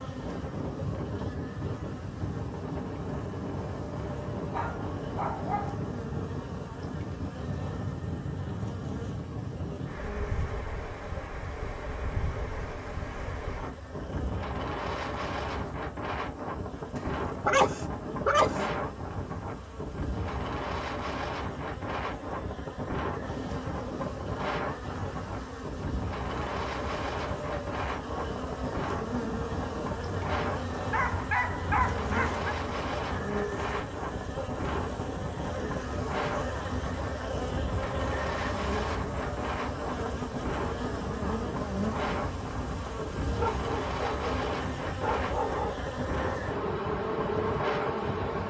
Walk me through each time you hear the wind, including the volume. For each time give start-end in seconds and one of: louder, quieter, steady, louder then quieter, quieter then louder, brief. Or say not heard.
0.0-48.4 steady.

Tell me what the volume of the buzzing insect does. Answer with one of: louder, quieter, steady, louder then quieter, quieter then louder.
louder.